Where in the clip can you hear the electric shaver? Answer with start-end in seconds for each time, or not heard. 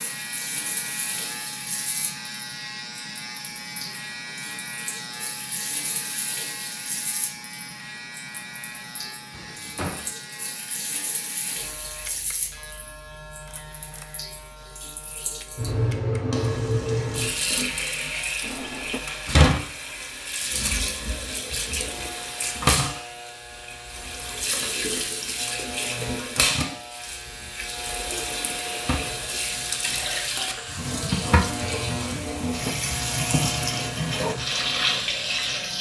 0.0-35.7.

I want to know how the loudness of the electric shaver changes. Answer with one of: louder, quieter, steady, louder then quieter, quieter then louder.
quieter then louder.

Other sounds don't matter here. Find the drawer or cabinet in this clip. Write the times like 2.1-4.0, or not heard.
9.3-10.1, 18.4-19.1, 32.1-32.9.